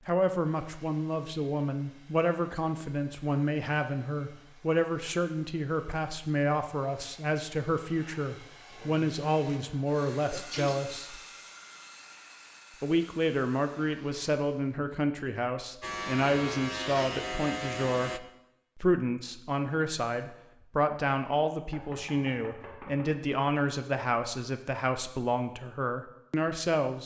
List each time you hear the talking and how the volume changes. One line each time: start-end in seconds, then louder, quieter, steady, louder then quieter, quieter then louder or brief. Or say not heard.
0.1-11.2 steady
12.8-27.0 steady.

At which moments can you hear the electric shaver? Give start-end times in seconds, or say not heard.
15.8-18.2.